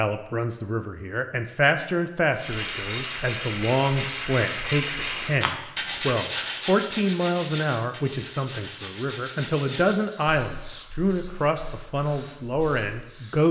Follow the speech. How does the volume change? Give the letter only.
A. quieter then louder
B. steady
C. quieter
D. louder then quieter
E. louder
B.